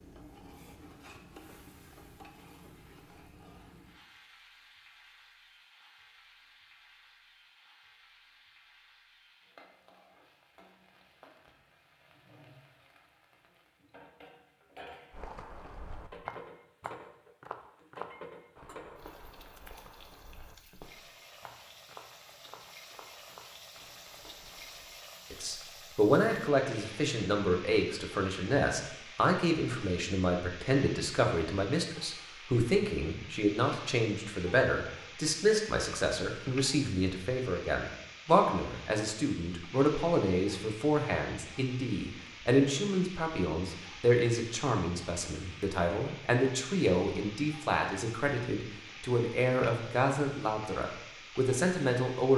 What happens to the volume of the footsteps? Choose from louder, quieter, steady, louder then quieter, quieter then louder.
quieter.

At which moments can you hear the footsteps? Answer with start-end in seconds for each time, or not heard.
15.1-24.9.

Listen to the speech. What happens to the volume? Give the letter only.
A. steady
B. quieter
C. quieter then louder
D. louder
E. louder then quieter
A.